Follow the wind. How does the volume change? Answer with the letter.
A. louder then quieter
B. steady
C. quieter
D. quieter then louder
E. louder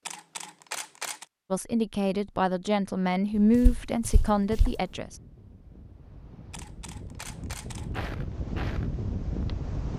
E.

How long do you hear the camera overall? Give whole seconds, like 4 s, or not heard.
3 s.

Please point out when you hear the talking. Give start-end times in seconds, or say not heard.
1.5-5.2.